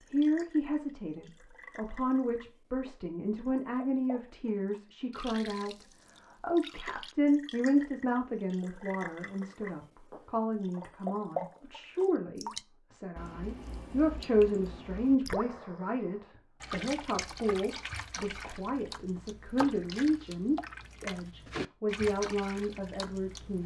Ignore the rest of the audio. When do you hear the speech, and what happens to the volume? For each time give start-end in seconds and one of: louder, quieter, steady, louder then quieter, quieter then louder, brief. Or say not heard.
0.1-23.6 steady.